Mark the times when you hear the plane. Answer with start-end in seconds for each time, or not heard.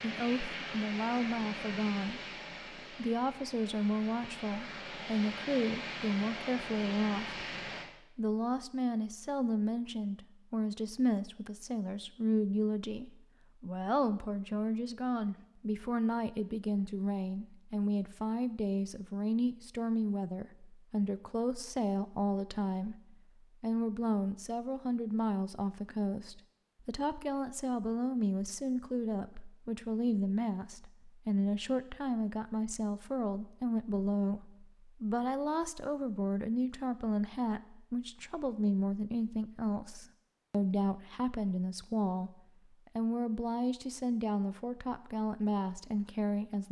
0.0-7.9.